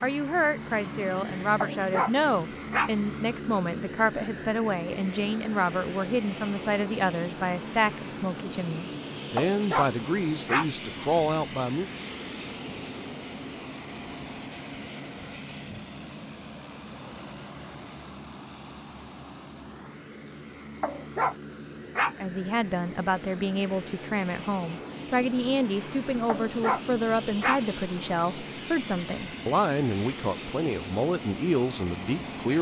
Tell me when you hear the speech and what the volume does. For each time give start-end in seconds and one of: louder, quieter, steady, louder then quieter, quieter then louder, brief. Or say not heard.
0.0-11.9 steady
22.2-32.5 steady.